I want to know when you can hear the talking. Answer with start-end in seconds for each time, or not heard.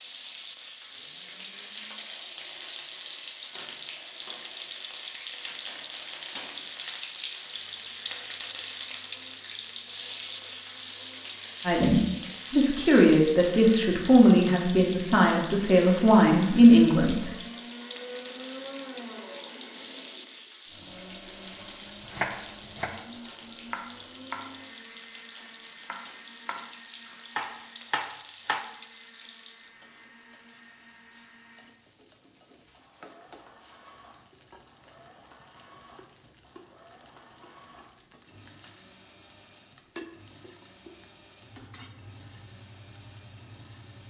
11.7-17.3.